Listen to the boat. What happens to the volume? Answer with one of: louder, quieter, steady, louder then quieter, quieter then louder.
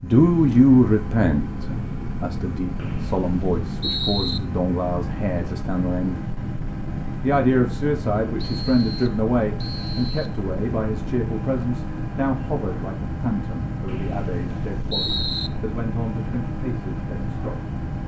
steady.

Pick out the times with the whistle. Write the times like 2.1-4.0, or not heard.
2.8-4.4, 8.3-10.4, 13.8-15.5.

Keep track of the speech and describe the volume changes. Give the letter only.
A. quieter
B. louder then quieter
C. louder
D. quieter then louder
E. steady
A.